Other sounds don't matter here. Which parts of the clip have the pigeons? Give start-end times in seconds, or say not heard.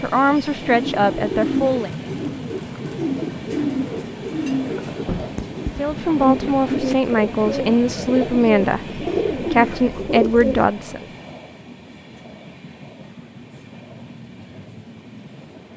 0.6-10.7.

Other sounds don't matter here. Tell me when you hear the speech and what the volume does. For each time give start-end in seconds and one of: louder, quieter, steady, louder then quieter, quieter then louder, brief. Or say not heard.
0.0-1.9 brief
5.8-11.1 steady.